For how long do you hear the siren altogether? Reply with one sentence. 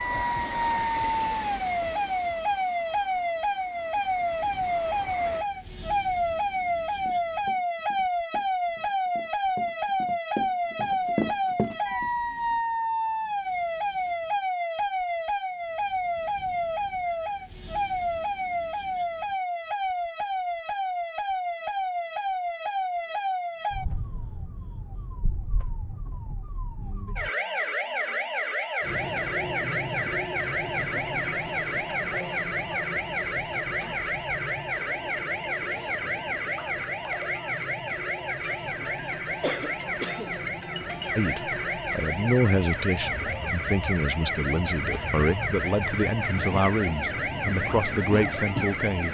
The siren can be heard for 49 seconds in total.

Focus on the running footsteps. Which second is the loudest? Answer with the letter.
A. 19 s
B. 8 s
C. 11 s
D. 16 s
C.